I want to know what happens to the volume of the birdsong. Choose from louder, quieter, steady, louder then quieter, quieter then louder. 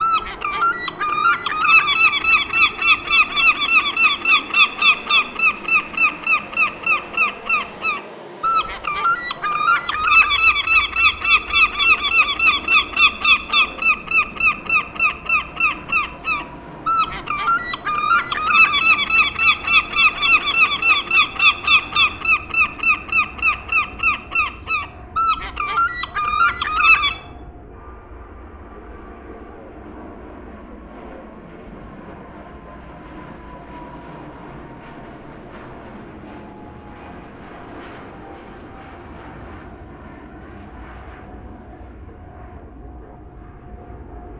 steady.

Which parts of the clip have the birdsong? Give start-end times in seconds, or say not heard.
0.0-27.1.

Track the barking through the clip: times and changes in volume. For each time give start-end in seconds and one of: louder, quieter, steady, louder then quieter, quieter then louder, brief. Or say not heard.
not heard.